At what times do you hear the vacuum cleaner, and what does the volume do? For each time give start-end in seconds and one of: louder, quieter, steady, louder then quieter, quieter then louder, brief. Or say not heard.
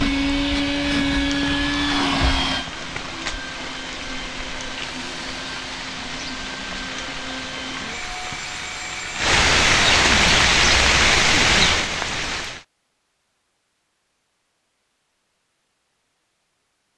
0.0-9.3 quieter.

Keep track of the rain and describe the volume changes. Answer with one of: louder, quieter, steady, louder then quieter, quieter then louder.
louder.